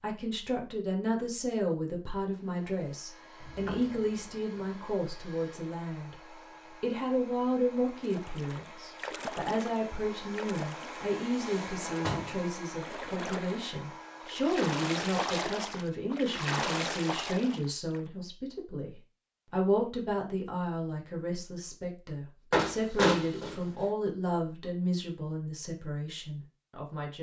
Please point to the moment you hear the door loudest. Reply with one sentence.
The volume of the door peaks at 23 seconds.